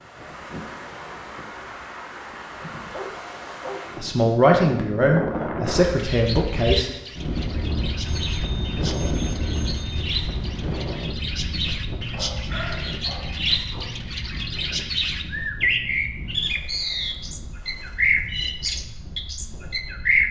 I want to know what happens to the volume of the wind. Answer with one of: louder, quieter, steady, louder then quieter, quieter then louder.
louder then quieter.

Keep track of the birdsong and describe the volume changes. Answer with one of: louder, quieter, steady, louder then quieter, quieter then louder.
louder.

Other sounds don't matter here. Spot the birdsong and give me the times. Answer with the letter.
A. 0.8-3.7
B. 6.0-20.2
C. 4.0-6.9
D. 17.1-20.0
B.